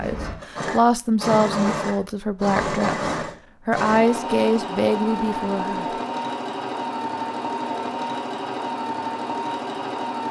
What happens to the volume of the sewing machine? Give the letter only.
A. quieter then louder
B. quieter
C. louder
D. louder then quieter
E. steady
E.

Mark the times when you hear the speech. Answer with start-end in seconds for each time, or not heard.
0.0-5.8.